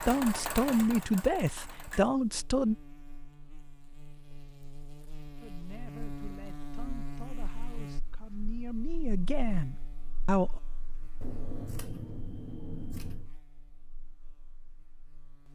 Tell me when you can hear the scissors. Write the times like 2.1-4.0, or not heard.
11.2-13.3.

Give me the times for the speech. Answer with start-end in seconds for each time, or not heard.
0.1-2.8, 5.4-10.6.